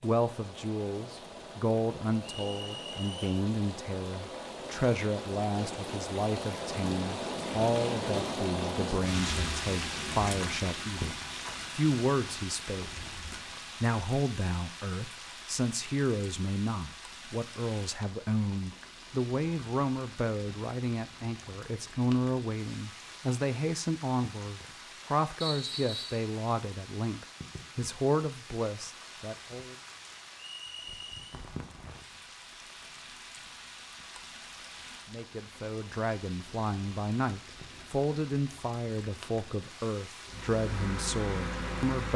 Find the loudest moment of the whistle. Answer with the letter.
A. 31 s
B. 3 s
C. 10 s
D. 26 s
D.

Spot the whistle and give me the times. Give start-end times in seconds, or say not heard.
2.2-3.2, 25.4-26.2, 30.4-31.2.